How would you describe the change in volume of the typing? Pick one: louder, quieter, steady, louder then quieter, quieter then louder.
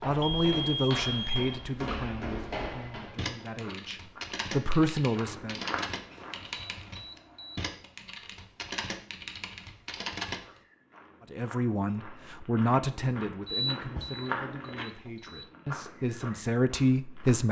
steady.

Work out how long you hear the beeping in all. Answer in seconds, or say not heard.
5 s.